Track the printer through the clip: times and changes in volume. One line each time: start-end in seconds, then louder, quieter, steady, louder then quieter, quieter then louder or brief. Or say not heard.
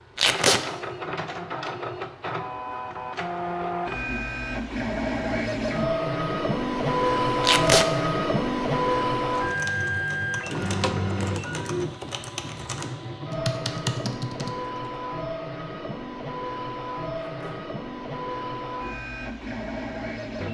0.0-20.4 louder then quieter.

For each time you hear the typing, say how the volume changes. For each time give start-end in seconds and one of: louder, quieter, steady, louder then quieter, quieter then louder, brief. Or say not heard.
9.3-14.7 louder.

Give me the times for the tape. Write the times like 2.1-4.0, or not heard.
0.1-0.6, 7.4-7.8, 17.2-17.6.